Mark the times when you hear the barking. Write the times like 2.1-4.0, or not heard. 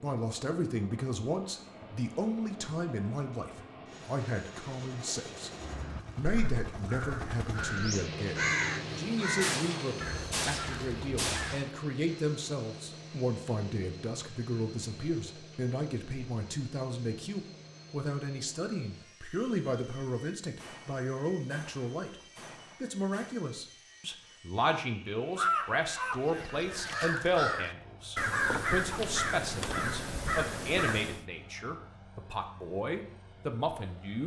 not heard.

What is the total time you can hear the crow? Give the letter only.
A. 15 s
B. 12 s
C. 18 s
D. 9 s
B.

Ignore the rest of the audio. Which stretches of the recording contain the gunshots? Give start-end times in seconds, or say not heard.
9.4-11.8, 20.6-23.4.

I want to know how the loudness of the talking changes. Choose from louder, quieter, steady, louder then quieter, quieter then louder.
steady.